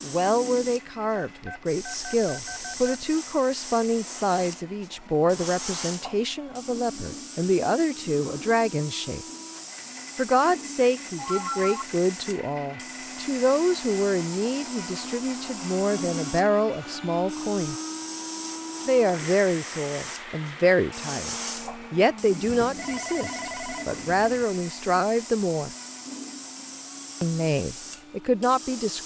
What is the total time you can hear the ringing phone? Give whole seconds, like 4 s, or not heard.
5 s.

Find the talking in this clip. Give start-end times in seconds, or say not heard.
0.0-9.2, 10.2-17.8, 18.9-25.7, 27.2-29.0.